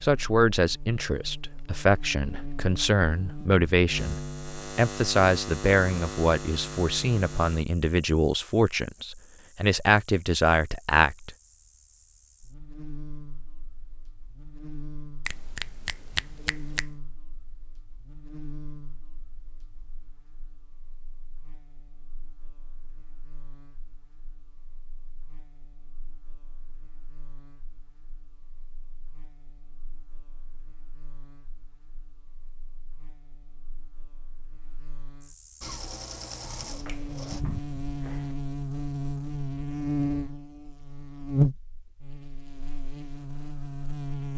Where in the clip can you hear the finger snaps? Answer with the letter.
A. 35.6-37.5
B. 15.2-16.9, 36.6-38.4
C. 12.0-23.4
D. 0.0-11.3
B.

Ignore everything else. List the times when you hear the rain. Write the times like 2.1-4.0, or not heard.
not heard.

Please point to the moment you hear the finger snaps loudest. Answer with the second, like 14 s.
16 s.